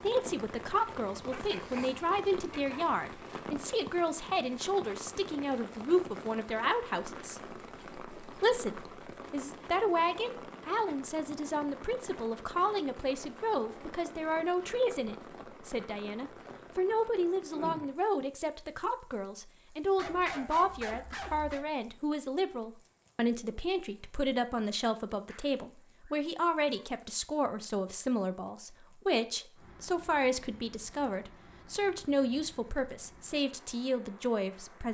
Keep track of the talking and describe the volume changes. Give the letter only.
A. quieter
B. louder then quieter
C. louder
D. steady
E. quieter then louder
D.